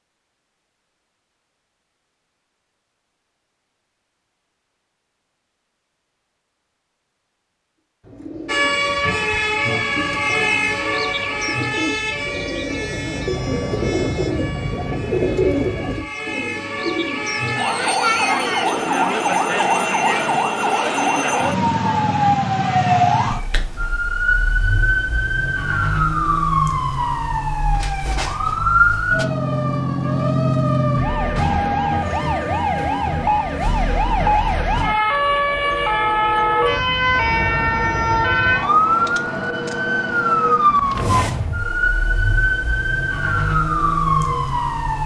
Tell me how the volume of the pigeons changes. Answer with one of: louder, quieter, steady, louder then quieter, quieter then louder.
louder then quieter.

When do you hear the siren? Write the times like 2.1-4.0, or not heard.
8.4-45.0.